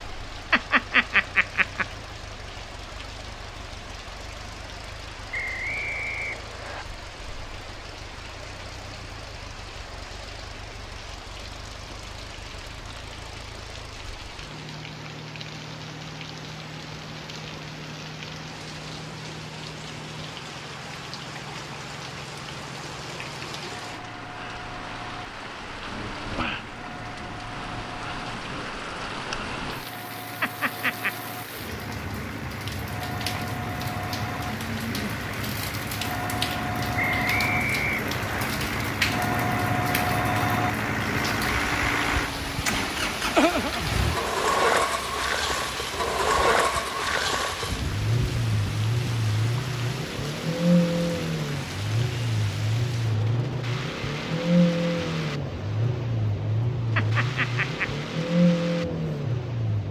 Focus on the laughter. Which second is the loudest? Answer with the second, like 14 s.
1 s.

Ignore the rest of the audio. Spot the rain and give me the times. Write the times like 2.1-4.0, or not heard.
0.0-59.8.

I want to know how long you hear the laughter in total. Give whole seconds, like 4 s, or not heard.
3 s.